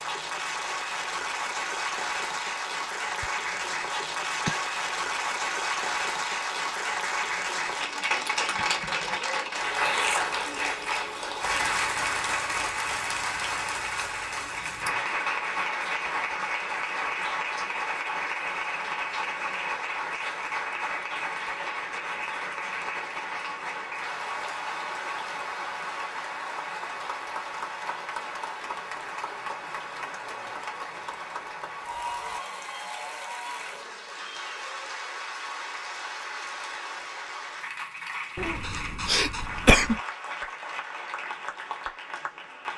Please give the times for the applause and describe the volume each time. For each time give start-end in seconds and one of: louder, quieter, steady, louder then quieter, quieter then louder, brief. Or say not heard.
0.0-42.7 quieter.